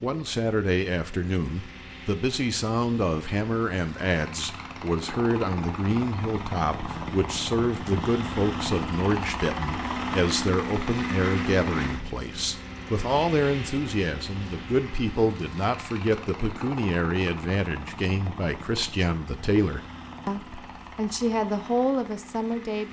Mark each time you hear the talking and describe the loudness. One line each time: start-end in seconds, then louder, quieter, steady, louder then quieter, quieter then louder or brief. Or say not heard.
0.0-22.8 steady.